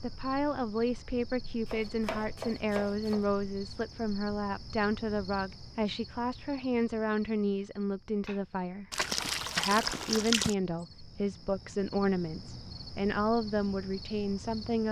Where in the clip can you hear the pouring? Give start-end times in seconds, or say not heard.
8.9-10.6.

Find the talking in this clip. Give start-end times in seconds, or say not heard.
0.0-8.8, 9.6-14.8.